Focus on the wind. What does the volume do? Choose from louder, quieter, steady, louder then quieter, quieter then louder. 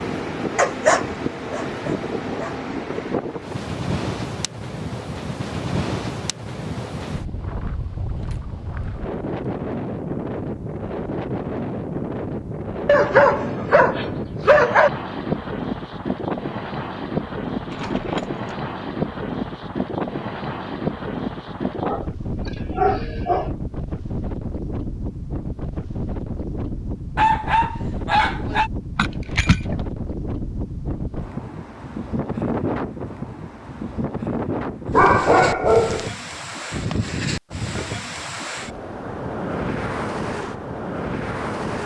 steady.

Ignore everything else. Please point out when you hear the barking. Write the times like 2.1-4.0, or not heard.
0.6-2.5, 12.8-14.9, 21.8-23.5, 27.1-28.7, 34.9-36.1.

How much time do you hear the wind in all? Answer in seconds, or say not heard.
42 s.